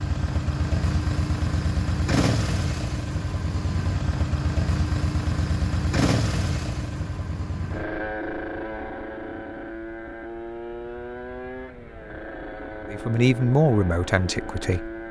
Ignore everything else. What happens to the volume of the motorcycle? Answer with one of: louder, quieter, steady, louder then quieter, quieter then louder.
quieter.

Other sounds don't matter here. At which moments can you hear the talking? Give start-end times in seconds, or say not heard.
12.9-14.9.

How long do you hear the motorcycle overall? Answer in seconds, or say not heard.
15 s.